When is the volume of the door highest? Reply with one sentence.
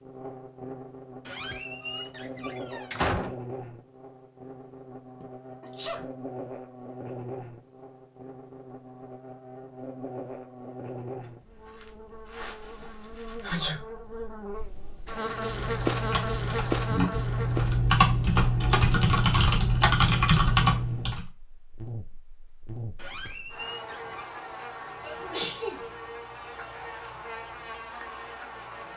The loudest moment of the door is at 3 seconds.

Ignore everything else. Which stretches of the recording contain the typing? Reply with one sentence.
You can hear the typing from 15.2 to 21.2 s.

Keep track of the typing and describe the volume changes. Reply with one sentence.
The loudness of the typing goes up.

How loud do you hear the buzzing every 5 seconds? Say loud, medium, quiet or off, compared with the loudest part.
medium, medium, medium, loud, medium, medium.